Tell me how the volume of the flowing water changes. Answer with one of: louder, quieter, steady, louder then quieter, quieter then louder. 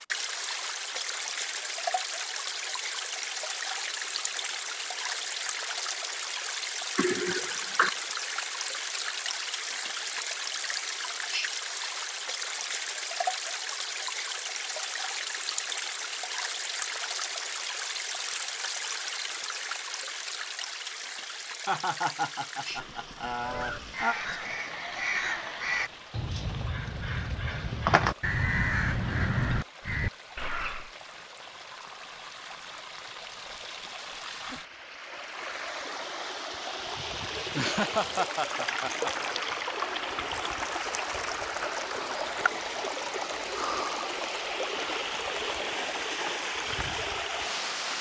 quieter then louder.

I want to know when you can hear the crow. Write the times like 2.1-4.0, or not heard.
23.4-30.9.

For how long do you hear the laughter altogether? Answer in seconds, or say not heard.
6 s.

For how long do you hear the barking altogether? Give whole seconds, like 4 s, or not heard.
not heard.